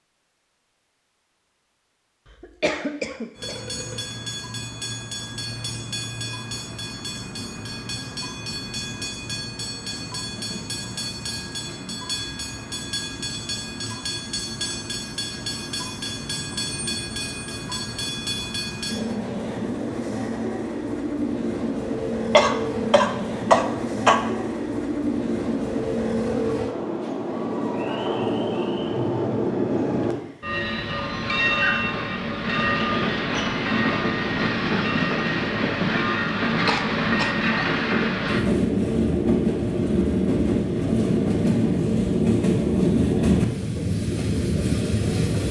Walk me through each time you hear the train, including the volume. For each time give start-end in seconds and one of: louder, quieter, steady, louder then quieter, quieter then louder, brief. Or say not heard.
3.4-45.4 louder.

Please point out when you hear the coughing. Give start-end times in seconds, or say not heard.
2.4-3.6, 22.3-24.1, 36.6-37.4.